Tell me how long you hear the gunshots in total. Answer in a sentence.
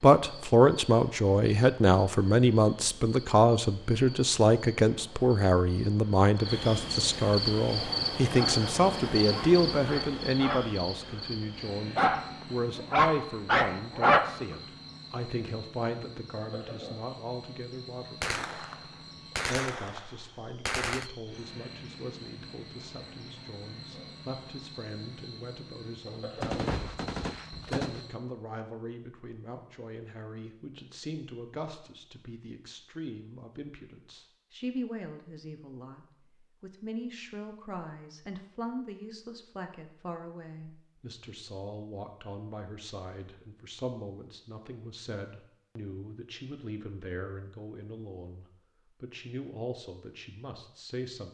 The gunshots can be heard for 4 seconds in total.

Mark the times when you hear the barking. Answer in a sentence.
The barking can be heard from 8.2 to 10.7 s and from 11.8 to 14.3 s.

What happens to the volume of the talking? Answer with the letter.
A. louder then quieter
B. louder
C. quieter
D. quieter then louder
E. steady
C.